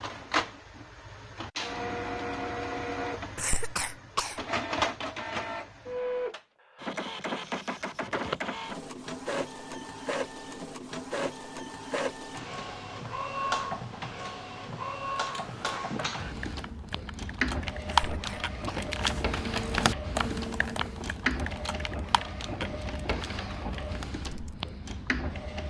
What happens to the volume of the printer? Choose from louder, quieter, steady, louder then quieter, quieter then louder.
steady.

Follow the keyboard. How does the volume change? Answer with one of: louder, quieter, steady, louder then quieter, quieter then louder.
louder then quieter.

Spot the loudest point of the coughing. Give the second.
4 s.